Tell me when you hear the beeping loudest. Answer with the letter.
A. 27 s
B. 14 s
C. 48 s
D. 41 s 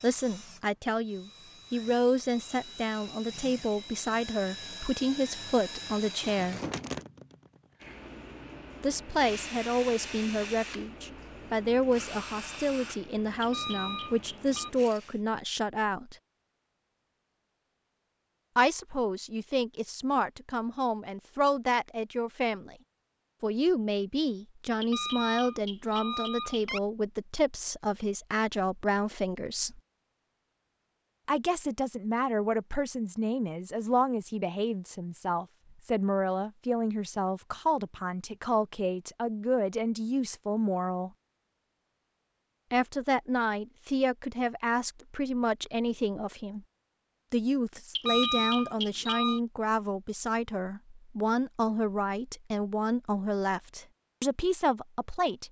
C.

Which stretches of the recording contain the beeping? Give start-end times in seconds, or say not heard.
13.4-14.7, 24.8-26.8, 48.0-49.4.